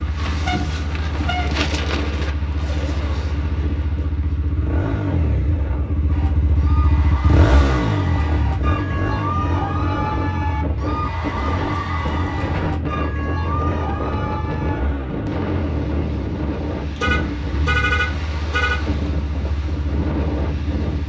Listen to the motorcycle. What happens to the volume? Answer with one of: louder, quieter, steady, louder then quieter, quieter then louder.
louder then quieter.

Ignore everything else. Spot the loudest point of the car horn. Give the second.
18 s.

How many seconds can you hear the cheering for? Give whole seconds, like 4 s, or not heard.
9 s.